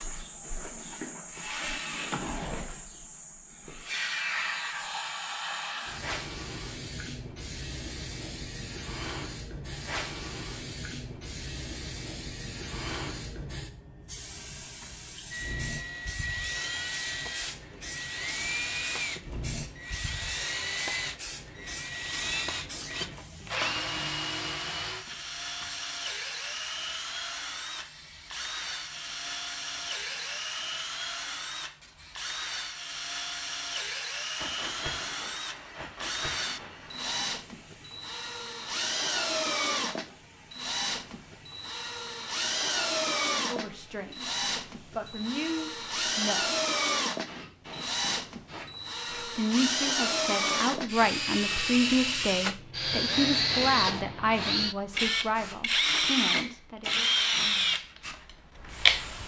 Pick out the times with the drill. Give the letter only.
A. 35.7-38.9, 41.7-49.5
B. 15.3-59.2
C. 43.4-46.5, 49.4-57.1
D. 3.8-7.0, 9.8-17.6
B.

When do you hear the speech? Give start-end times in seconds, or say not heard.
43.4-46.5, 49.4-57.1.